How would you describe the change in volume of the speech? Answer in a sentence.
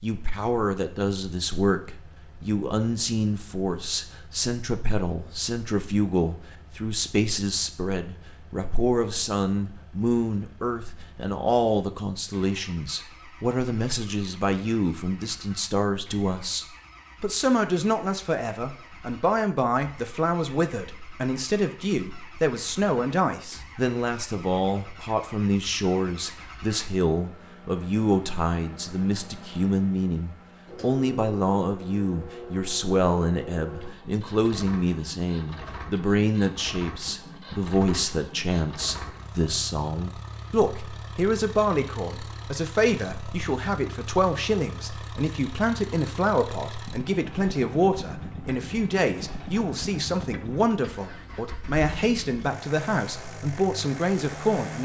The loudness of the speech stays about the same.